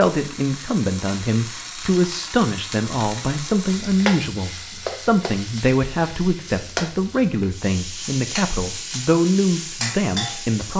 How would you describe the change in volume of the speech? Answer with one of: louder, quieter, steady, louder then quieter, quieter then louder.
steady.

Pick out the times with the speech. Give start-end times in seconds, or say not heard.
0.0-10.7.